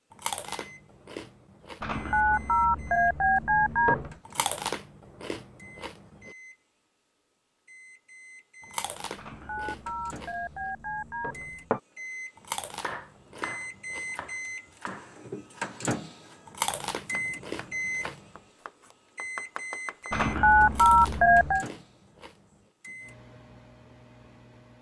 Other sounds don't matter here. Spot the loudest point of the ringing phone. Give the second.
21 s.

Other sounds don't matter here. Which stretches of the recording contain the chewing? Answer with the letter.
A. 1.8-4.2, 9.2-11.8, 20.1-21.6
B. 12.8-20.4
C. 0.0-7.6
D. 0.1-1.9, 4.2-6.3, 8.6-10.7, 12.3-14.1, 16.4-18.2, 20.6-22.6
D.